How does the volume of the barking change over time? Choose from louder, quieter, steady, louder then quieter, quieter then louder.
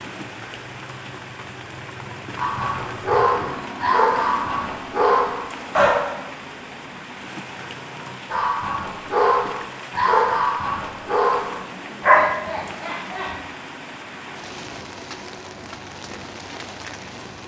steady.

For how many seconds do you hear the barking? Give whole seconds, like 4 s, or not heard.
9 s.